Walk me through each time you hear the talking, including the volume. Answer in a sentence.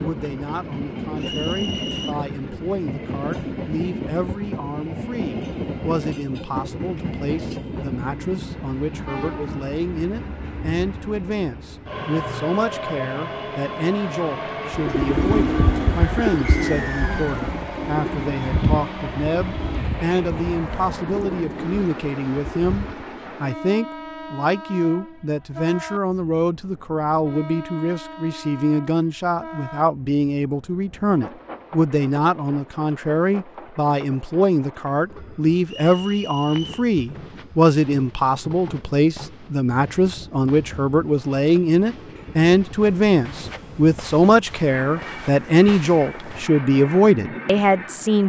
The talking can be heard from 0.0 to 48.2 s, getting louder.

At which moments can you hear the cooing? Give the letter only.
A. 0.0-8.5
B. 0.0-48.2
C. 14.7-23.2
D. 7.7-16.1
C.